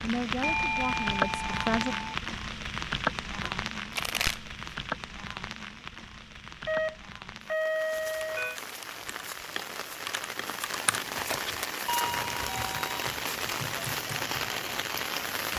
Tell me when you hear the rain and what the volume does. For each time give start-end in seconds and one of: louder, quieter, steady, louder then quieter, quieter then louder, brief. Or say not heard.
0.0-15.5 quieter then louder.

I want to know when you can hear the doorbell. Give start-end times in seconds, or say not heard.
0.4-2.1, 6.7-8.6, 11.8-13.1.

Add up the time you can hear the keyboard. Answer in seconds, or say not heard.
7 s.